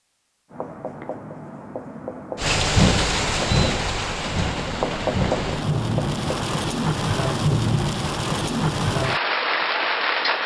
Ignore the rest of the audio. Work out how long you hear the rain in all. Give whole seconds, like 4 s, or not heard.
8 s.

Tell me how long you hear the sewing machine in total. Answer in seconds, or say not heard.
not heard.